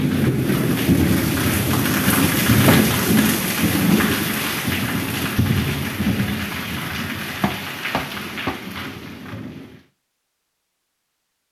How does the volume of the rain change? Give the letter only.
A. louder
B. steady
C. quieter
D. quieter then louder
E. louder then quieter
C.